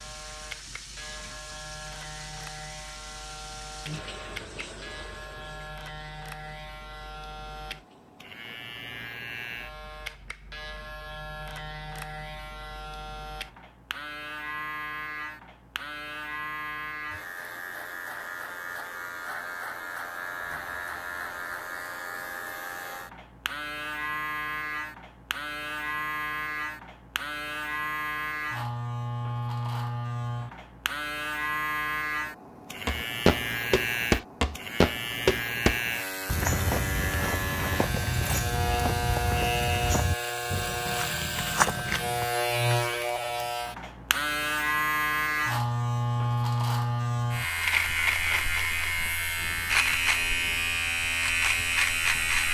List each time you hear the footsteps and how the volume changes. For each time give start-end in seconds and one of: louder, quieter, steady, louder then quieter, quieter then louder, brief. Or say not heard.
32.9-42.2 quieter.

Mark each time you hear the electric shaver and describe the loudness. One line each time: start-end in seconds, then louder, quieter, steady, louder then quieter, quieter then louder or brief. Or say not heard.
0.0-52.4 louder.